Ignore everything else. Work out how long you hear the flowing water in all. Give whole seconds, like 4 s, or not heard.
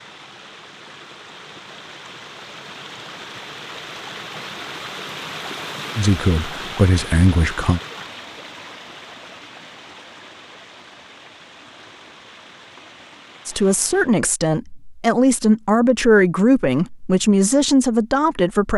14 s.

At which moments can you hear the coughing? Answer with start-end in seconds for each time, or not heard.
not heard.